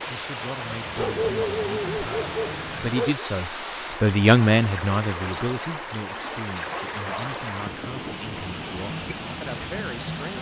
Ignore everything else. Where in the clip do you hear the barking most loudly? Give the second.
1 s.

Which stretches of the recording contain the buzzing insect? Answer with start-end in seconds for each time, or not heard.
0.0-3.0, 8.2-10.3.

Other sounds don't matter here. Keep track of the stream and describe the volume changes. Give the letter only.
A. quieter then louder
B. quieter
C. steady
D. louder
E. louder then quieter
C.